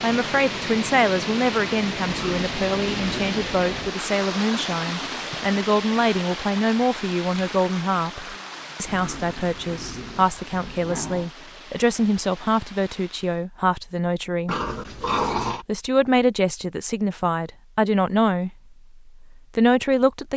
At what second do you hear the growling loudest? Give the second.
15 s.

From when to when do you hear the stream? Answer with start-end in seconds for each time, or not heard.
0.0-13.4.